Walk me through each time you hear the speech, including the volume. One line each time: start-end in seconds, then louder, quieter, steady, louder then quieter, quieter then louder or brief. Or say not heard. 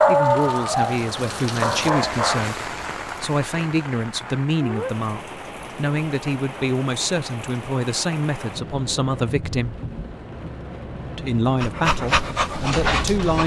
0.1-9.8 steady
11.1-13.4 brief.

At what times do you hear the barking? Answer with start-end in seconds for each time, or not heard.
0.0-2.5, 11.6-13.4.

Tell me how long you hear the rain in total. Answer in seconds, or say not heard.
13 s.